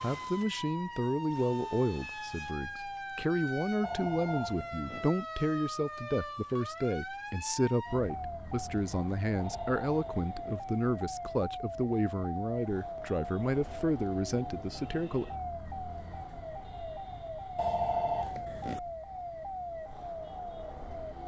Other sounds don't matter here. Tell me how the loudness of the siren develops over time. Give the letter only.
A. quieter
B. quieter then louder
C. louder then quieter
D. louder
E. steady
E.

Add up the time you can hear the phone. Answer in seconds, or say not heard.
4 s.